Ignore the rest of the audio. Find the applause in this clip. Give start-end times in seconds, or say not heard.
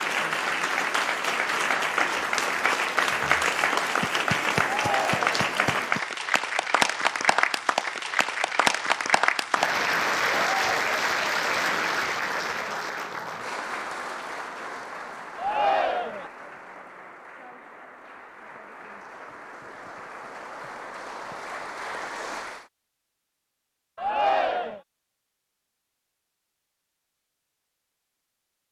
0.0-22.6.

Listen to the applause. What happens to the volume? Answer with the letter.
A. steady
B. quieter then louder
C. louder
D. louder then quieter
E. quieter
E.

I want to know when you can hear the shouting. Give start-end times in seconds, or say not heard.
4.6-5.3, 15.3-16.3, 23.9-24.8.